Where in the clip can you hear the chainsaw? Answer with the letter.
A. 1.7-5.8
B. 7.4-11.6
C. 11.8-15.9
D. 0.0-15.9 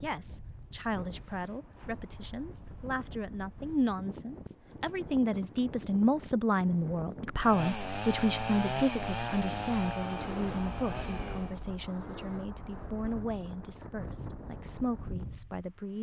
B.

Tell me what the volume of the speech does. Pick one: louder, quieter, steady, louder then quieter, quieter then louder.
louder then quieter.